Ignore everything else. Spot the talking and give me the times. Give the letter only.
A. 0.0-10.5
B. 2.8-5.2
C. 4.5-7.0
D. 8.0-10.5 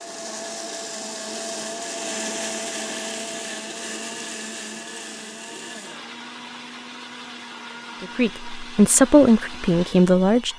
D.